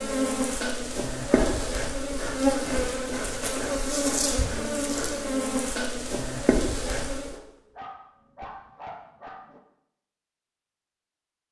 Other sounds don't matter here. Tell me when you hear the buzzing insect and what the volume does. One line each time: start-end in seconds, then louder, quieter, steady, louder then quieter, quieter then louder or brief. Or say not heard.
0.0-7.3 steady.